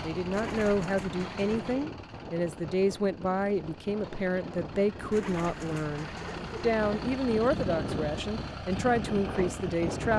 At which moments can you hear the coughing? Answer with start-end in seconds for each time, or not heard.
not heard.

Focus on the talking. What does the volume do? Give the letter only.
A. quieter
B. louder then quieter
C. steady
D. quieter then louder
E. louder
C.